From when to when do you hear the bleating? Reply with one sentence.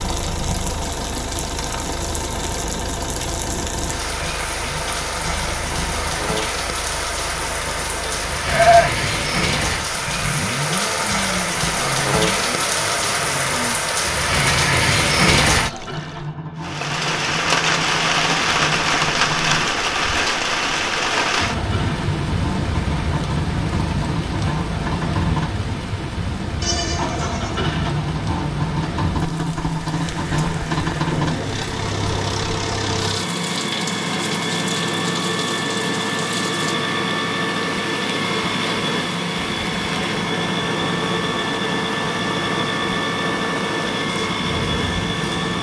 The bleating can be heard from 8.4 to 8.9 s and from 26.6 to 27.6 s.